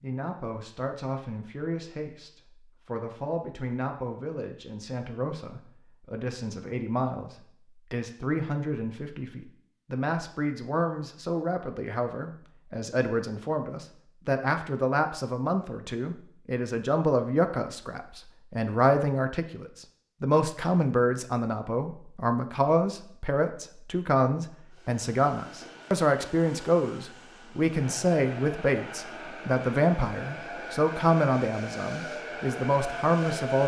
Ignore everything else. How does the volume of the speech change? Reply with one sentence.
The loudness of the speech goes up.